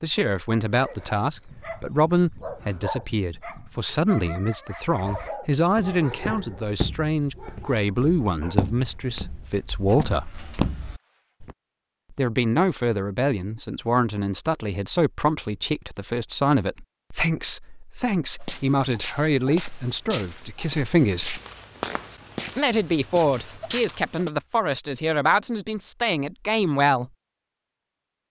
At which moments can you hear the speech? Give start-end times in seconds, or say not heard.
0.0-10.4, 12.1-21.4, 22.6-27.1.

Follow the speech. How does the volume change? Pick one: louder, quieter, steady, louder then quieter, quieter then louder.
steady.